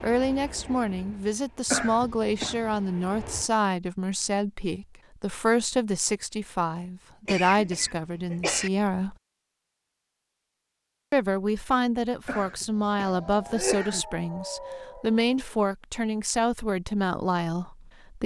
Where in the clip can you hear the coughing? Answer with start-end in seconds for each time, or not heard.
1.6-2.8, 7.2-8.7, 12.2-14.1.